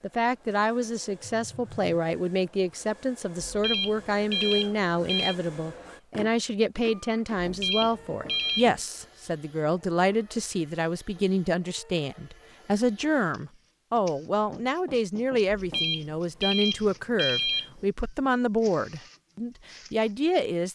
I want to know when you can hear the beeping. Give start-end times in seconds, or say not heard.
3.4-5.3, 7.4-8.7, 15.4-17.8.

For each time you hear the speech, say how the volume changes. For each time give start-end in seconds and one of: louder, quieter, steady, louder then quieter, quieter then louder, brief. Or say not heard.
0.0-20.7 steady.